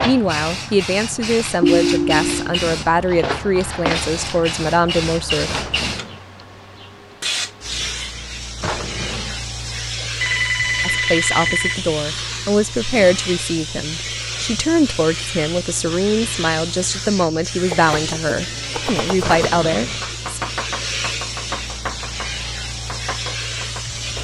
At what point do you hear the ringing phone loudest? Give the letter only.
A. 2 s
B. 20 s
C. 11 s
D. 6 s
A.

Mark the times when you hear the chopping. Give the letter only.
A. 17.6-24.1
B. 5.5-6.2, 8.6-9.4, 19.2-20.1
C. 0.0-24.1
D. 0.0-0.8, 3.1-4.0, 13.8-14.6
A.